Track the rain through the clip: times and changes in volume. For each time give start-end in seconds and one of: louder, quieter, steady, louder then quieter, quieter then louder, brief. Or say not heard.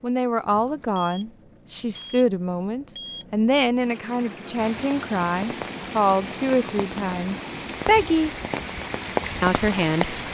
4.5-10.2 louder.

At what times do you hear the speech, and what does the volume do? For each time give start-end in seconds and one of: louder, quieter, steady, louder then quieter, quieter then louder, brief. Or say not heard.
0.0-8.3 steady
9.4-10.2 brief.